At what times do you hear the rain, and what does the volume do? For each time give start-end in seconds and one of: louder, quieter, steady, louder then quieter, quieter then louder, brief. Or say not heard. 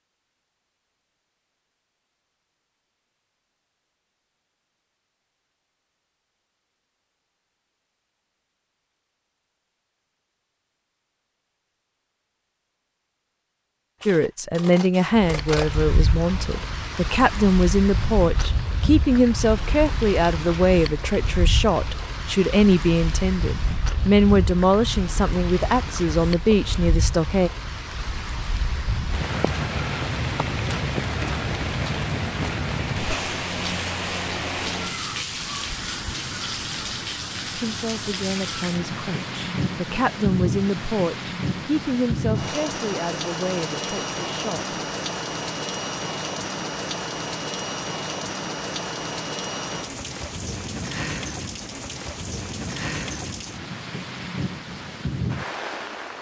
15.1-56.1 steady.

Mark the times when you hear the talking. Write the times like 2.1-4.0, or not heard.
14.1-27.5, 37.5-44.8.